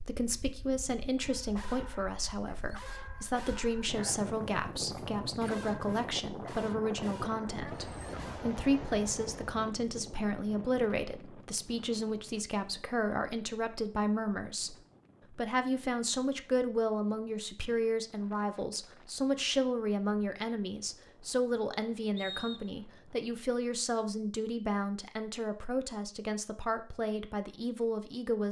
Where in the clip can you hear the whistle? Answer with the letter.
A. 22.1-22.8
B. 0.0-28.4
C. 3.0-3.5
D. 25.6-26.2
A.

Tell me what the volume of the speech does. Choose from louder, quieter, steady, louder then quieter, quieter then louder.
steady.